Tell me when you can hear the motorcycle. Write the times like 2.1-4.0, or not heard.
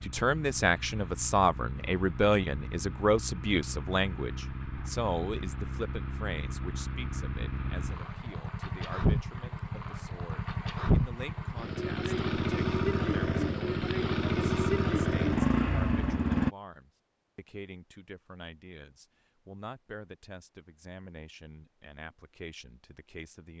0.0-16.5.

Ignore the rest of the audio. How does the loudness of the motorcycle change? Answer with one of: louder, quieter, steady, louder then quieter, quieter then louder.
louder.